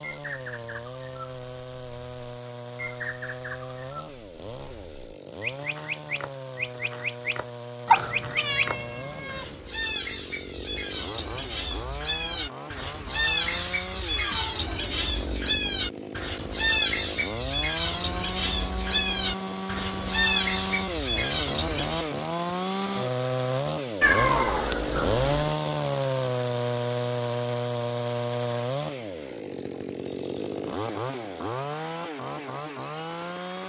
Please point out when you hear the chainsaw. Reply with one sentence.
You can hear the chainsaw from 0.0 to 33.6 s.